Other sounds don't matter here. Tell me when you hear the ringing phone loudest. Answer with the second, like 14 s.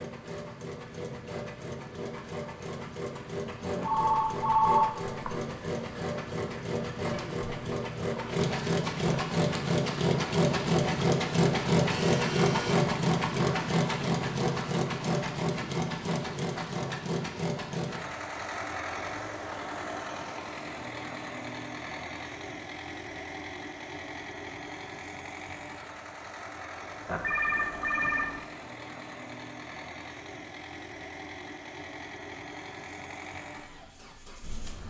5 s.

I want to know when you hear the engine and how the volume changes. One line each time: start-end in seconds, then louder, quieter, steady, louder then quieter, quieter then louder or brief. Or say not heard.
0.0-34.8 louder then quieter.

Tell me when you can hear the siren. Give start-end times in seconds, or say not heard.
not heard.